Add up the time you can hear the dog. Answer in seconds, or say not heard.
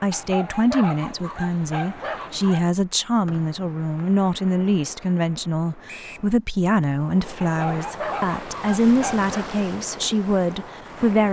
5 s.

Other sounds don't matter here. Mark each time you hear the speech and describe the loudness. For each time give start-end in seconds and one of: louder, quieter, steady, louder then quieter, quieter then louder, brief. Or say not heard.
0.0-11.2 steady.